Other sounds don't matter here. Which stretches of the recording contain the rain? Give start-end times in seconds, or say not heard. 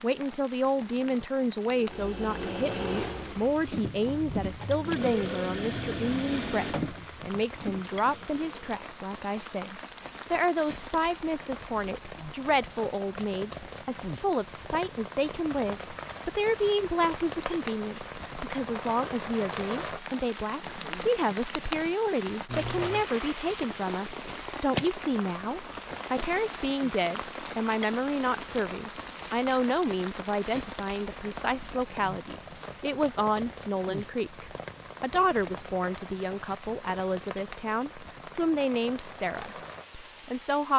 0.0-40.7.